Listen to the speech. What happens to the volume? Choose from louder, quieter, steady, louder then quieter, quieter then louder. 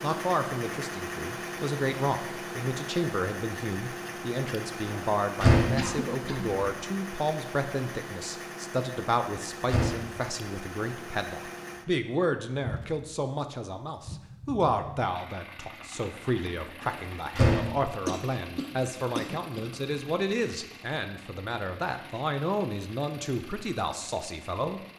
steady.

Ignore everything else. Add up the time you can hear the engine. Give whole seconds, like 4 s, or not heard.
25 s.